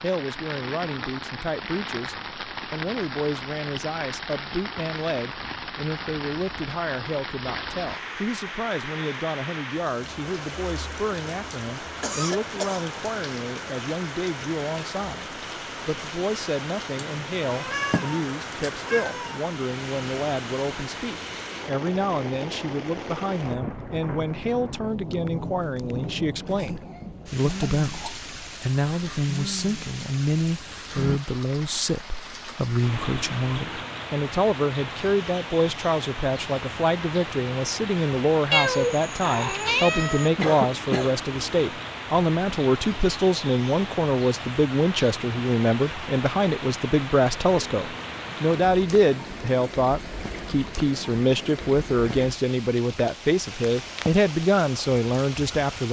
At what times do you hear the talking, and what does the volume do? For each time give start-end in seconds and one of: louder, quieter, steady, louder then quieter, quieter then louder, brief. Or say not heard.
0.0-55.8 louder.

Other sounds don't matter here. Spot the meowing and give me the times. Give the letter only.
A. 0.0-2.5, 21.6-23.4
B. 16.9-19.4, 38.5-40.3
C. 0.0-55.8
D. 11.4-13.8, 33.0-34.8
B.